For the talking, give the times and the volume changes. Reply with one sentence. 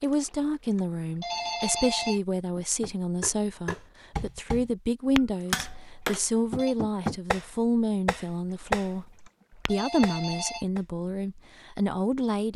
You can hear the talking from 0.0 to 12.5 s, at a steady volume.